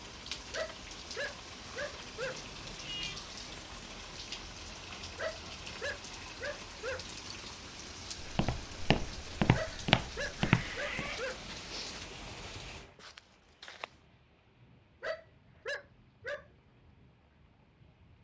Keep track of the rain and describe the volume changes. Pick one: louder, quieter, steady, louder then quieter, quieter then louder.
quieter.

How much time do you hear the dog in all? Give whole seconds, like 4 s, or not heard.
7 s.